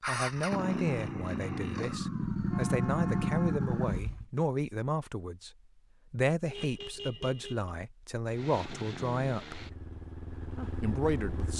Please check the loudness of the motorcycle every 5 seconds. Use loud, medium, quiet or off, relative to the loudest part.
loud, medium, medium.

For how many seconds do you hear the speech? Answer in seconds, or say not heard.
10 s.